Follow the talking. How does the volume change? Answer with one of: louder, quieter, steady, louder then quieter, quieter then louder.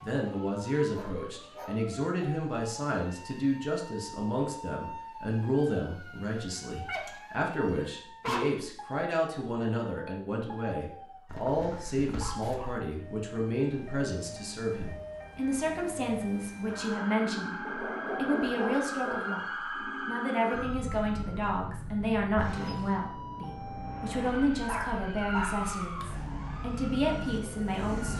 steady.